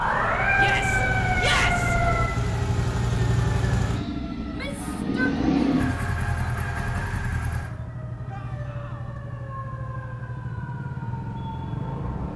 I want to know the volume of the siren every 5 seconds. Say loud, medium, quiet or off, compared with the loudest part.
loud, quiet, quiet.